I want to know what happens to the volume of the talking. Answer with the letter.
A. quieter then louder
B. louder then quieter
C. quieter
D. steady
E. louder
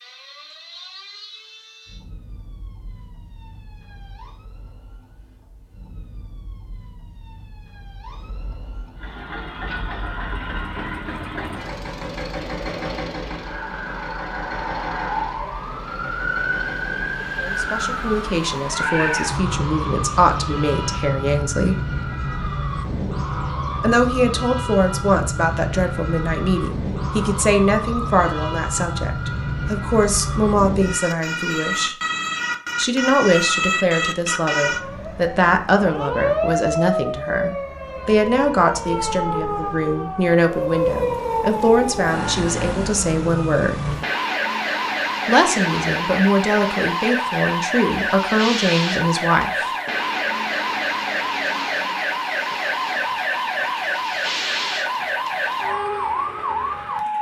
D.